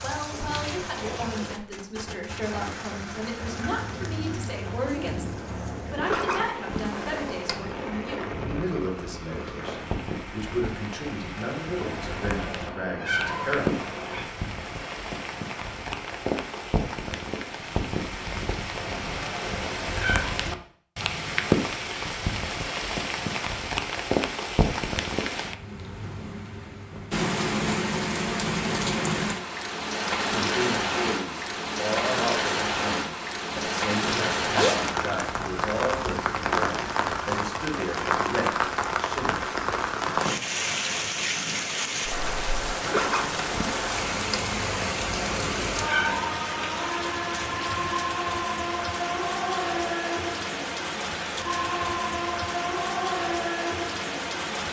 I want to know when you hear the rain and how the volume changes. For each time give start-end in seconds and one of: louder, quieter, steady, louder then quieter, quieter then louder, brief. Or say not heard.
0.0-54.6 louder.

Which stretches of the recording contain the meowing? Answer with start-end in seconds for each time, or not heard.
11.8-14.2, 18.8-20.4, 44.6-46.3.